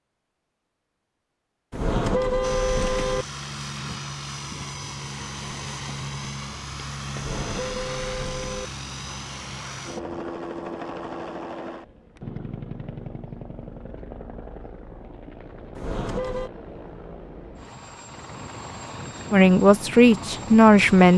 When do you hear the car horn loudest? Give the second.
2 s.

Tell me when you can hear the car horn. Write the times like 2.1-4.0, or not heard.
1.7-3.2, 7.2-8.7, 15.8-16.5.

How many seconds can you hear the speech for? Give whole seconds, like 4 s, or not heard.
2 s.